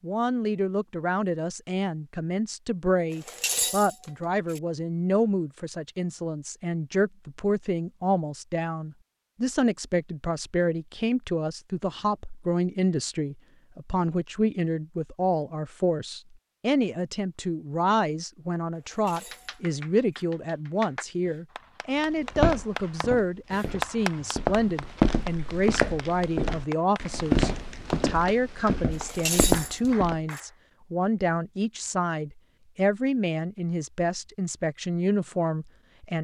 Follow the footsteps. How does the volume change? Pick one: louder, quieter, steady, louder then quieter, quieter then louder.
louder.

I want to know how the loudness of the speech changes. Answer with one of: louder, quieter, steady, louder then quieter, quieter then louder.
steady.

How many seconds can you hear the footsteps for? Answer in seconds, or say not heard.
8 s.